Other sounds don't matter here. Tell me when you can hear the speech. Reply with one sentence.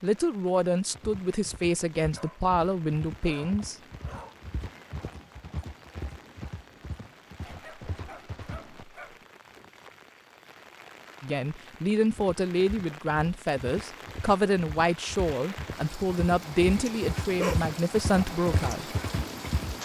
The speech can be heard from 0.0 to 3.8 s and from 11.2 to 18.9 s.